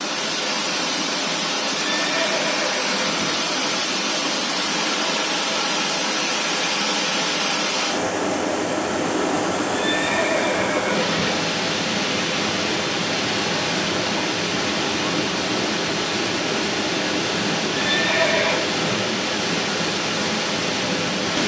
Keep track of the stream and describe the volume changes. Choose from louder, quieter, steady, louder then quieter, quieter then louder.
steady.